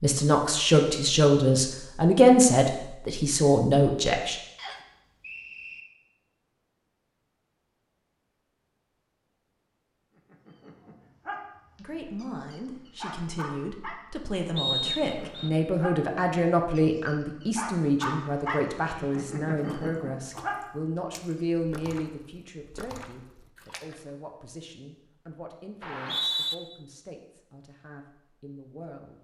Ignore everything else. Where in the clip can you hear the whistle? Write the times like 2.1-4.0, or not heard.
4.5-5.8, 14.6-15.5, 25.8-26.6.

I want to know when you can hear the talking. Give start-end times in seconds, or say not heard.
0.0-4.3, 11.8-29.2.